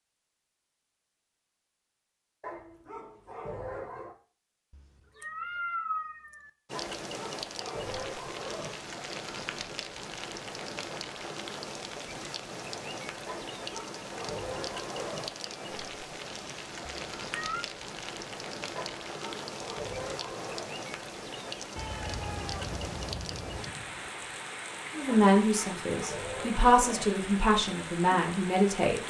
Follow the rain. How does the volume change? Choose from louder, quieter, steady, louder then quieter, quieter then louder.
steady.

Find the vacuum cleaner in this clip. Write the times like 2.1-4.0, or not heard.
not heard.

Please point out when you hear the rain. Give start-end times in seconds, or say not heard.
6.7-29.0.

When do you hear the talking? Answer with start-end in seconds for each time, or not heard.
24.9-29.0.